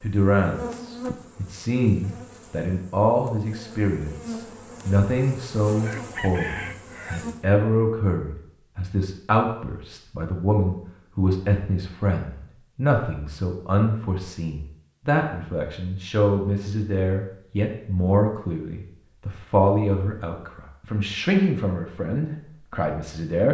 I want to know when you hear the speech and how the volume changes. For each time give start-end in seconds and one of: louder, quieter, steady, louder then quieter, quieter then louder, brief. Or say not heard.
0.0-23.4 steady.